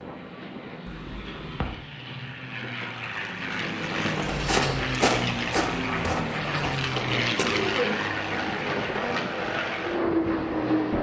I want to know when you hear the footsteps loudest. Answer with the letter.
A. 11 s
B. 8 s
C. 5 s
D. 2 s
C.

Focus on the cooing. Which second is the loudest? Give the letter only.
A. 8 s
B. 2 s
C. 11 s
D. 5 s
A.